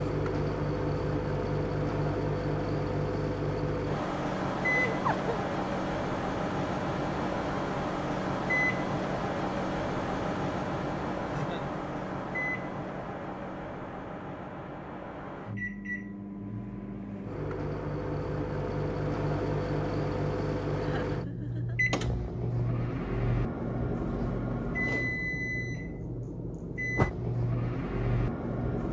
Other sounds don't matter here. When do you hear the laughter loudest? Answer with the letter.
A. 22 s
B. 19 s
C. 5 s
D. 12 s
C.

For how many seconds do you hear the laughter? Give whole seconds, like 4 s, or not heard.
2 s.